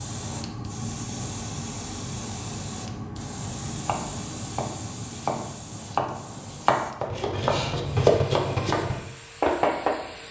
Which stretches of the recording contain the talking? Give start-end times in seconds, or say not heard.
not heard.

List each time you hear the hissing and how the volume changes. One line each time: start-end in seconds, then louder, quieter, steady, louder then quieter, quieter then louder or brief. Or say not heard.
0.0-10.2 quieter.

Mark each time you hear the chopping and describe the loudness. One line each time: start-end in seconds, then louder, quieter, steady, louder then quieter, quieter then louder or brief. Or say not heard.
3.8-9.9 louder.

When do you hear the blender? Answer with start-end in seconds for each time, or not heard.
not heard.